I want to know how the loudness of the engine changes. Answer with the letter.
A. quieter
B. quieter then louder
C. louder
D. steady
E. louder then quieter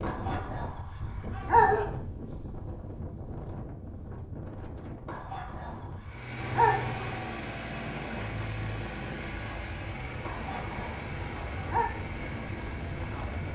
A.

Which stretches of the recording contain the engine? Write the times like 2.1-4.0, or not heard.
6.0-13.5.